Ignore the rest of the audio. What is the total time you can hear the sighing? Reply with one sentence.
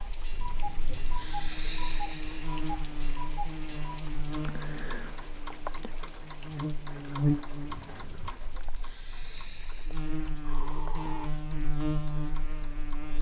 You can hear the sighing for 4 seconds altogether.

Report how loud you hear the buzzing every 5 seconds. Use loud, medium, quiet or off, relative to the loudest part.
medium, loud, loud.